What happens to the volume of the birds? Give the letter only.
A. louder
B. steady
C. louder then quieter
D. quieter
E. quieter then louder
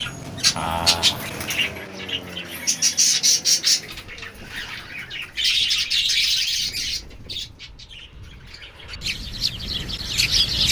D.